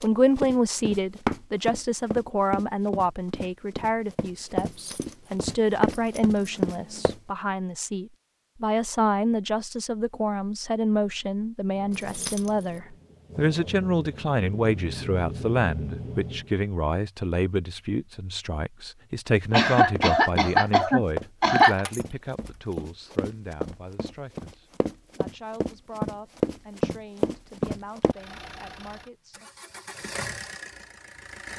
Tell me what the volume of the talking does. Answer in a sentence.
The volume of the talking goes down.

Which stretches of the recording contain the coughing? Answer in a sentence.
You can hear the coughing from 19.5 to 21.9 s.